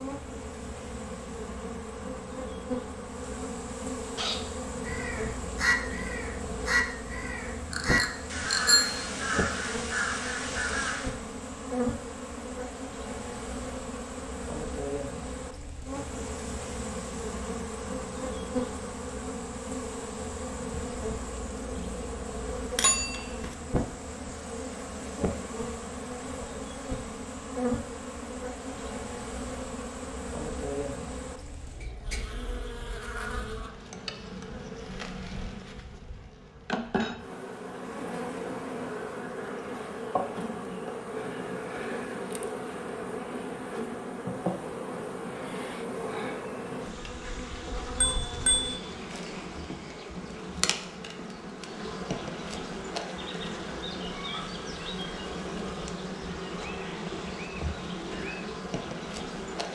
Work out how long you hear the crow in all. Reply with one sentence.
The crow can be heard for 7 seconds in total.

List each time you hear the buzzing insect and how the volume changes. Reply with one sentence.
You can hear the buzzing insect from 0.0 to 59.7 s, at a steady volume.